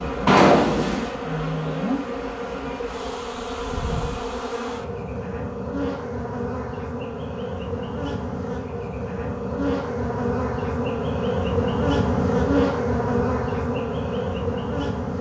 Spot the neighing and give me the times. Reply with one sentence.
You can hear the neighing from 0.2 to 1.1 s.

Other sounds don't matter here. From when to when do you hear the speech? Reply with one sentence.
You can't hear the speech here.